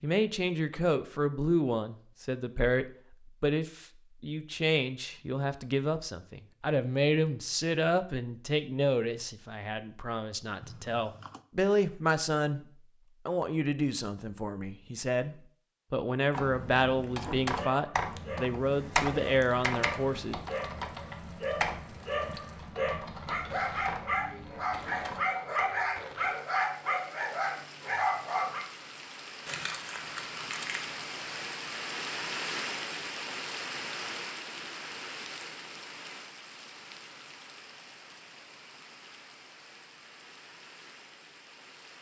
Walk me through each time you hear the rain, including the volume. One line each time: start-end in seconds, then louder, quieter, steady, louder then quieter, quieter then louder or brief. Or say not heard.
18.7-41.9 louder then quieter.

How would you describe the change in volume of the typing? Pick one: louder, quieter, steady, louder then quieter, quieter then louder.
quieter.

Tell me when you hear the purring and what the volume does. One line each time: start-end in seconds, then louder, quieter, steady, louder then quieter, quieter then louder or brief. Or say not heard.
not heard.